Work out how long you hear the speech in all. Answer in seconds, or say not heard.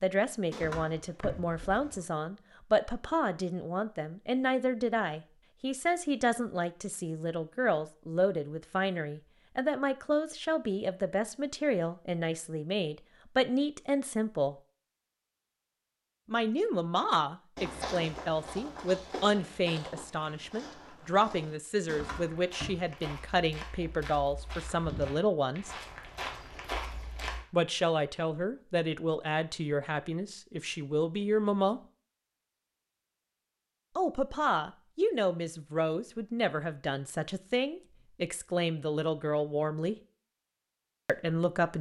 35 s.